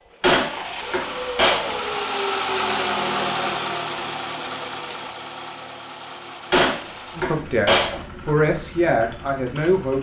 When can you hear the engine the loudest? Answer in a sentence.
The volume of the engine peaks at 3 seconds.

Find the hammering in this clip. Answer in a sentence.
The hammering can be heard from 0.2 to 1.9 s and from 6.5 to 8.0 s.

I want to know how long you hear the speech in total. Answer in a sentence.
You can hear the speech for 3 seconds altogether.